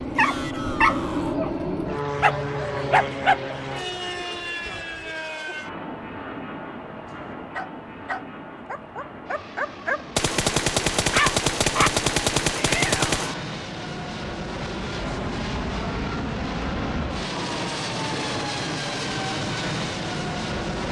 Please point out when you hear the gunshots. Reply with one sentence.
You can hear the gunshots from 10.2 to 13.3 s.